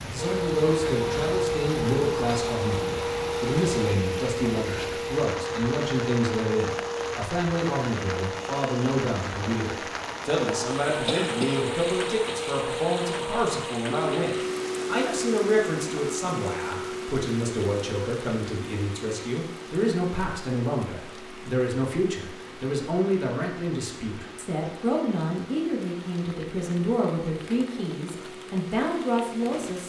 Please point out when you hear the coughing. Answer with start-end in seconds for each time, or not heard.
11.1-11.7.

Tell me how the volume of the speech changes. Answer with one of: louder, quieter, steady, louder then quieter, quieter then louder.
steady.